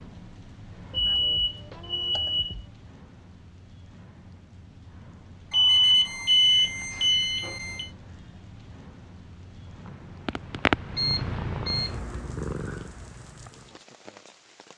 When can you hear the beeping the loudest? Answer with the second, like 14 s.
6 s.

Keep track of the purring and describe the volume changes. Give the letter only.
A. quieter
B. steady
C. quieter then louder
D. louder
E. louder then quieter
A.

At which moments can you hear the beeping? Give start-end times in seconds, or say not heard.
0.9-2.6, 5.5-7.9, 10.9-11.9.